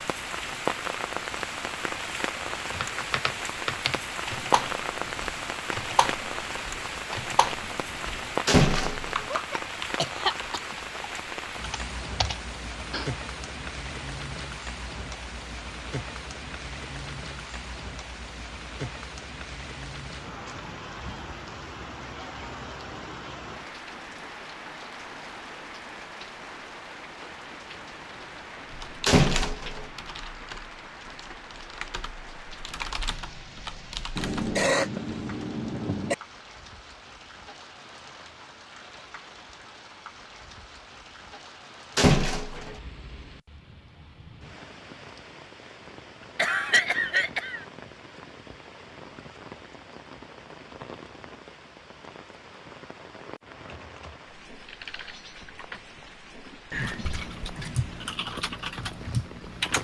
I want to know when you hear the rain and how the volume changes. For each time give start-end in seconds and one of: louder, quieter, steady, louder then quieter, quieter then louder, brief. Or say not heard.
0.0-59.7 quieter.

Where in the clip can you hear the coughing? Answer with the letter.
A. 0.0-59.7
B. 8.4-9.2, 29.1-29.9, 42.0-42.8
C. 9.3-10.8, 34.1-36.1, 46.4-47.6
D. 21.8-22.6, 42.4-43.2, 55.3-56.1
C.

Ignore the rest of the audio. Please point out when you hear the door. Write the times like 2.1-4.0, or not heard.
8.4-9.2, 29.1-29.9, 42.0-42.8.